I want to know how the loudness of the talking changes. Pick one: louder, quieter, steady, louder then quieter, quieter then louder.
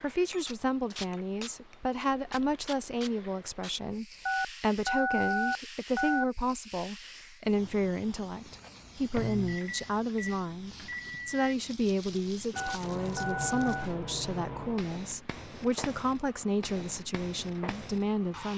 steady.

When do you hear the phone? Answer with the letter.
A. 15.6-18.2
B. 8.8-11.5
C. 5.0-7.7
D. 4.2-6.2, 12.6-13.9
D.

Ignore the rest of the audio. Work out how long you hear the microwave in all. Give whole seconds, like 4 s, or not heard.
3 s.